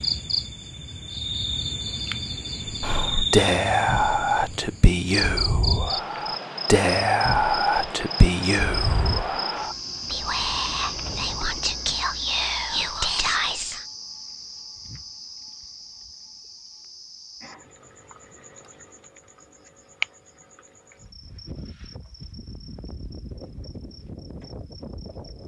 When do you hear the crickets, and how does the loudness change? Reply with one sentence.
You can hear the crickets from 0.0 to 25.4 s, getting quieter.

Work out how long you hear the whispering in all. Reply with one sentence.
The whispering can be heard for 11 seconds in total.